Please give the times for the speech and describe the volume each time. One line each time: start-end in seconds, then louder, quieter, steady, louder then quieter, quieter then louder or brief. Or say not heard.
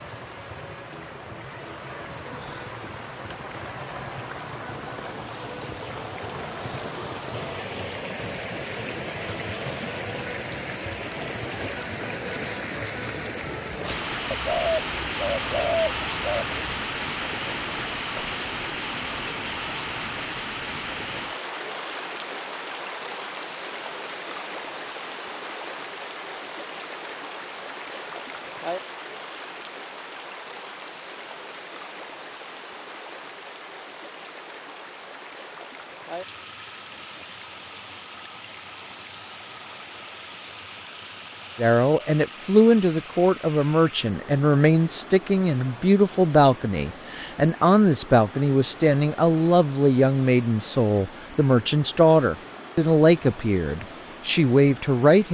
41.5-55.3 steady.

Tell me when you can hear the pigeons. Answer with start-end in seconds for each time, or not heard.
14.3-16.9.